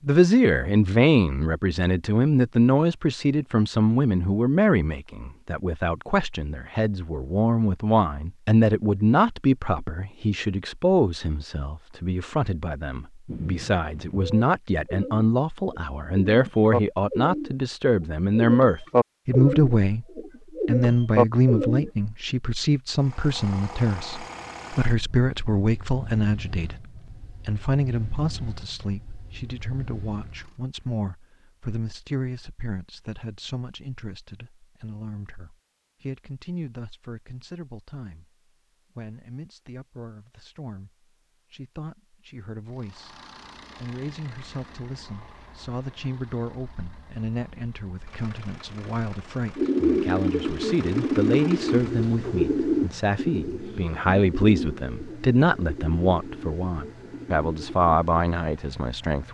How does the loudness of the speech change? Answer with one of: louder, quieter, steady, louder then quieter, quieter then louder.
quieter then louder.